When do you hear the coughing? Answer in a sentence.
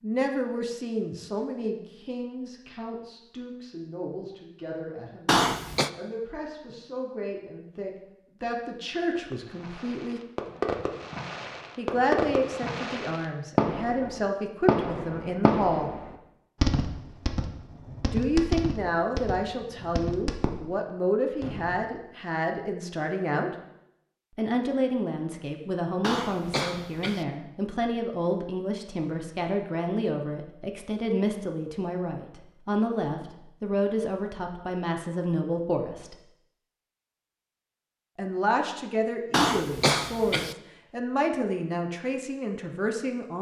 You can hear the coughing from 5.2 to 5.9 s, from 26.0 to 27.2 s and from 39.3 to 40.5 s.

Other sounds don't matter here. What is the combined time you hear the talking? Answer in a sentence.
The talking can be heard for 37 seconds in total.